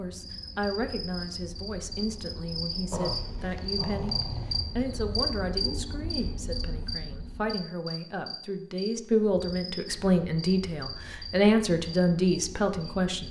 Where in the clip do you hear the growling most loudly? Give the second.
3 s.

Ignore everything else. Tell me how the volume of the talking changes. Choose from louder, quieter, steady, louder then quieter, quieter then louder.
louder.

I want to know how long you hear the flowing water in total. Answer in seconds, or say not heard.
not heard.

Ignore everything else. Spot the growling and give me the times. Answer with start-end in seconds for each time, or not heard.
2.9-4.7.